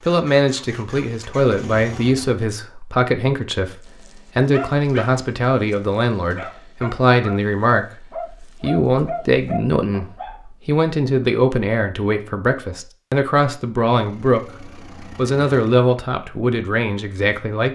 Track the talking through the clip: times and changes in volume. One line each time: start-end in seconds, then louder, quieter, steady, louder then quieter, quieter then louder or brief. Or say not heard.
0.1-17.7 steady.